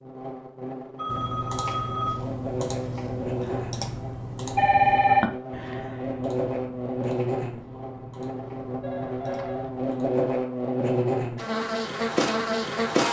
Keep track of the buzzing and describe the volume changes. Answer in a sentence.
The loudness of the buzzing goes up.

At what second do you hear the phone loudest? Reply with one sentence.
The loudest moment of the phone is at 5 seconds.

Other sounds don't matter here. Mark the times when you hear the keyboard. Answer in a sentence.
You can hear the keyboard from 1.1 to 10.2 s.